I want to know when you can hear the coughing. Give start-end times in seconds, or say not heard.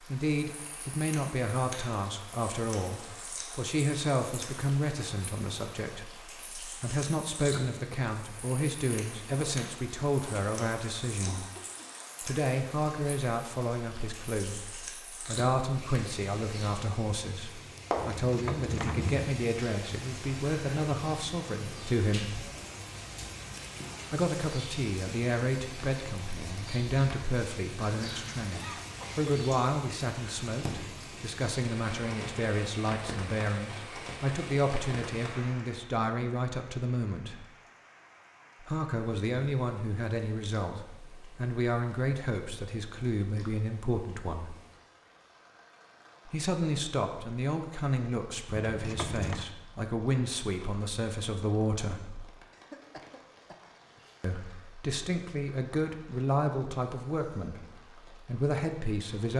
11.2-11.9, 28.4-29.3, 52.5-54.2.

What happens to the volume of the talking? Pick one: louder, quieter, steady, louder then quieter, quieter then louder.
steady.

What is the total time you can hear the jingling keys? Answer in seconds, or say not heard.
2 s.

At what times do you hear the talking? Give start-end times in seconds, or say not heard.
0.1-11.4, 12.2-22.4, 24.1-37.5, 38.6-44.5, 46.2-52.2, 54.2-59.3.